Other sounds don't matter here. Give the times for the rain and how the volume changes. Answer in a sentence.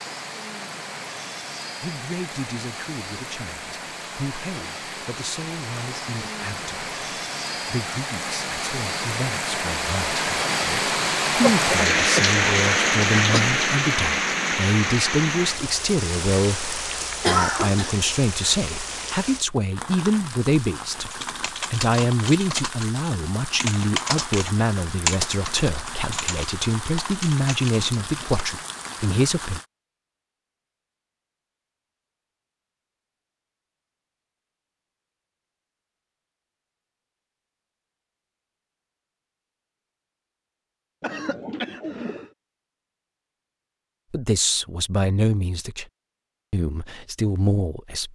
You can hear the rain from 0.0 to 29.6 s, getting louder then quieter.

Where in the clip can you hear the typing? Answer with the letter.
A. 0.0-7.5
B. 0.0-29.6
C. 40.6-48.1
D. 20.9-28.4
D.